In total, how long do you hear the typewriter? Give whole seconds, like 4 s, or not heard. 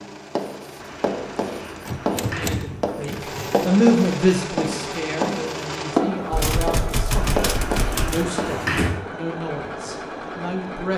4 s.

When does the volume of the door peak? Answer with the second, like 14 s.
9 s.